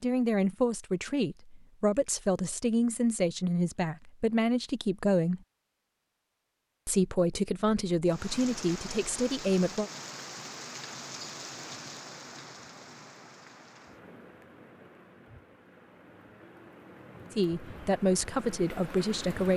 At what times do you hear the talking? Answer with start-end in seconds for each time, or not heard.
0.0-5.4, 6.8-9.9, 17.3-19.5.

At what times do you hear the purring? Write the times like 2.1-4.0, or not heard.
not heard.